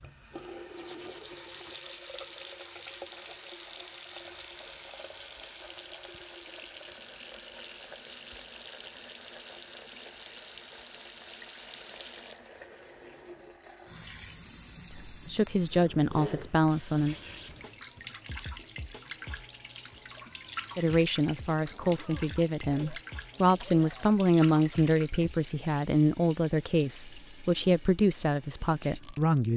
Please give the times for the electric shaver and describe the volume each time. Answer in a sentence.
The electric shaver can't be heard in this clip.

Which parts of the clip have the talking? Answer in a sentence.
You can hear the talking from 14.9 to 17.1 s and from 20.8 to 29.5 s.